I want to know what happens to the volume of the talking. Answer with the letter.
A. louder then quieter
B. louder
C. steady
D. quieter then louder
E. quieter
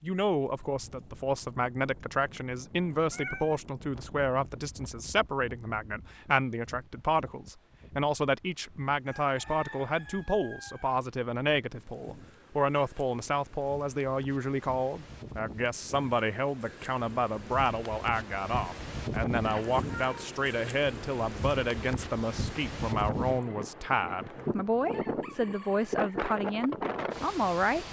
C.